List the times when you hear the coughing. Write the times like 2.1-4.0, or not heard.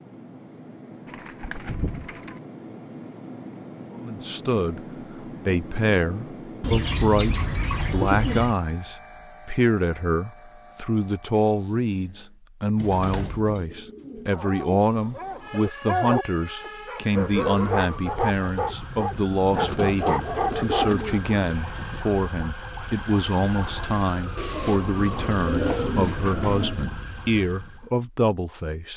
not heard.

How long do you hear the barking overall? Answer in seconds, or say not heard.
7 s.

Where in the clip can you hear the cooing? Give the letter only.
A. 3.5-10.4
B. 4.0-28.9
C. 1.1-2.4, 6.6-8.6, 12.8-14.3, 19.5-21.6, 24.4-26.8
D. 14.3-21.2
C.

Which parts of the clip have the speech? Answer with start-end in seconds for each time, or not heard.
4.0-28.9.